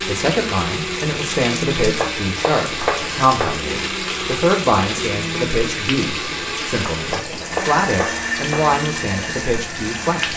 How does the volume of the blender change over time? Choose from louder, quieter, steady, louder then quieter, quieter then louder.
steady.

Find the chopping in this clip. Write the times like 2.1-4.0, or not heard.
1.9-3.6, 7.0-8.7.